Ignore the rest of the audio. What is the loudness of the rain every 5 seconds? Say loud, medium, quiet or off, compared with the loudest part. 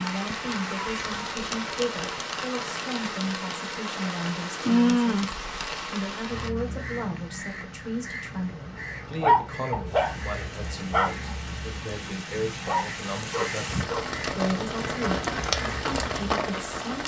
loud, medium, medium, loud.